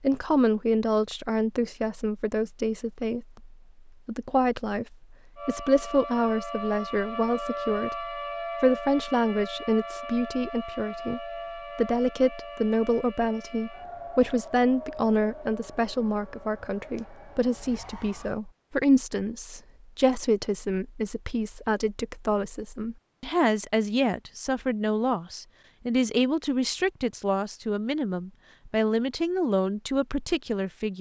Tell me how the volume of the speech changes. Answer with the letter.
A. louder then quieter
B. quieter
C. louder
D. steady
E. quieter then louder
D.